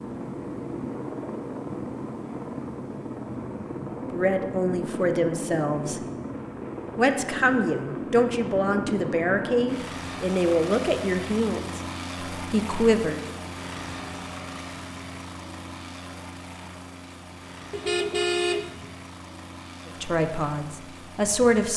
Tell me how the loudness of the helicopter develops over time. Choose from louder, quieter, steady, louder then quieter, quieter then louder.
quieter.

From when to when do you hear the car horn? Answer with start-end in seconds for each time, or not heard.
17.7-18.9.